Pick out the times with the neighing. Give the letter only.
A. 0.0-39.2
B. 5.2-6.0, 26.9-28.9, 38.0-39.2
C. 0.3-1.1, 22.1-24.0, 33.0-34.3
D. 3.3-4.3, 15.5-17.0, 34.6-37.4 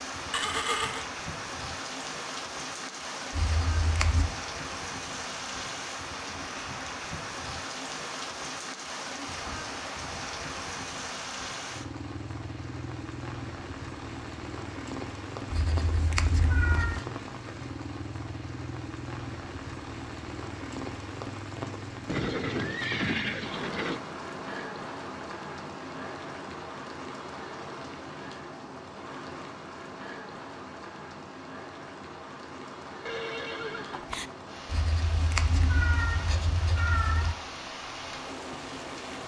C.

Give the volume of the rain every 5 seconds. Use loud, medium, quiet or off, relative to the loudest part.
loud, loud, loud, loud, loud, loud, medium, loud.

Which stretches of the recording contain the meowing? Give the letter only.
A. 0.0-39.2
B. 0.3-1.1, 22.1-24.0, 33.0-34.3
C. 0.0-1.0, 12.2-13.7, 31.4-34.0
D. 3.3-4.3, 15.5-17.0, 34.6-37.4
D.